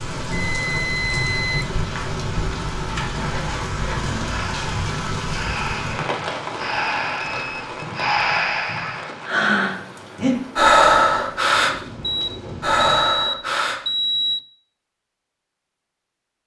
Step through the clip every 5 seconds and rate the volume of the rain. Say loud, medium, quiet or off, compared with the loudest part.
loud, loud, medium, off.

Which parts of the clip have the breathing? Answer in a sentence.
The breathing can be heard from 3.0 to 13.8 s.